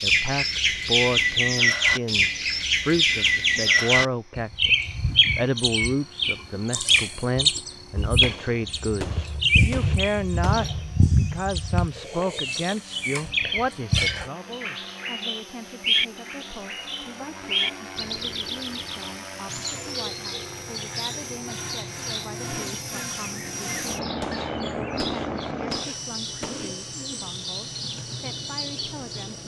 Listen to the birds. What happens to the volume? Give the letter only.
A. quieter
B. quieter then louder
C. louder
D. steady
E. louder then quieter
A.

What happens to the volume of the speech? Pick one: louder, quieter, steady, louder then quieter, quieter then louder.
quieter.